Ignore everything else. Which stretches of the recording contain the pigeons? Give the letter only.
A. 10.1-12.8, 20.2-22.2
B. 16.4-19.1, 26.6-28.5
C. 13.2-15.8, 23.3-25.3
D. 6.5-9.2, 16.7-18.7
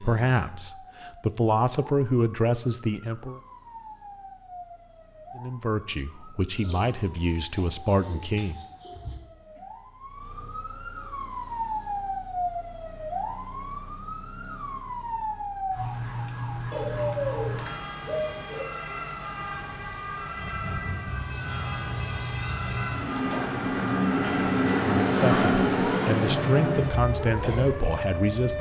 D.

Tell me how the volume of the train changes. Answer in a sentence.
The volume of the train goes up, then down.